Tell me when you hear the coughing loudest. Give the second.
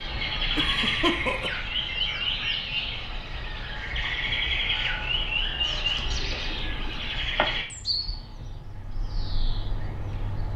1 s.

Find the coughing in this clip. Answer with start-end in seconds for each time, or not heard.
0.6-1.6, 6.5-7.5.